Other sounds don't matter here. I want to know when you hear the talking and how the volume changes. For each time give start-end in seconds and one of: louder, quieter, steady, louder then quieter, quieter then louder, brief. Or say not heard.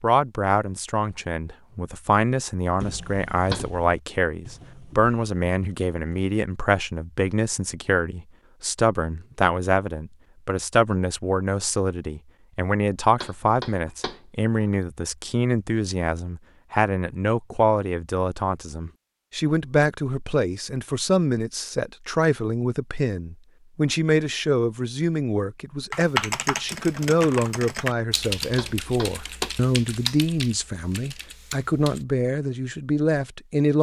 0.0-33.7 steady.